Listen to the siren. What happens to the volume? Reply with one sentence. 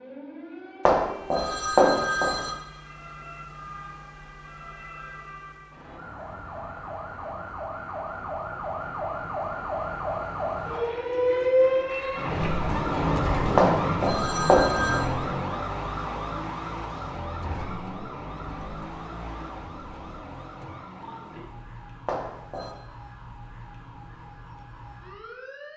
The loudness of the siren goes up, then down.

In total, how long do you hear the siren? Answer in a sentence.
You can hear the siren for 26 seconds altogether.